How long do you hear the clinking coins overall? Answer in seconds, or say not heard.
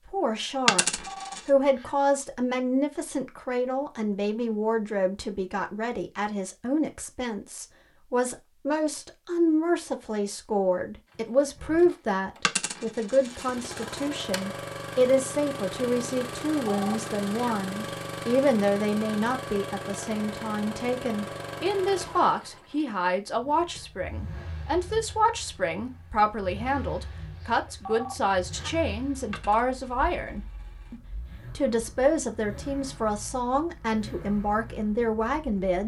4 s.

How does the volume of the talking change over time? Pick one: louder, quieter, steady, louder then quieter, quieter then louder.
steady.